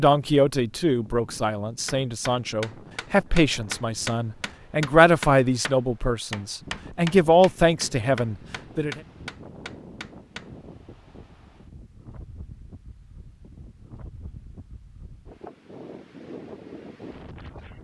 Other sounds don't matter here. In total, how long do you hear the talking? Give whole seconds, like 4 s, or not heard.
9 s.